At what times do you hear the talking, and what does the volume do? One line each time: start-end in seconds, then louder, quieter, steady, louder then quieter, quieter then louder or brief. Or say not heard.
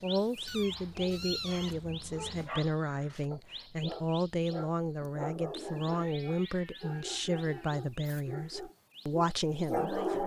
0.0-10.2 steady.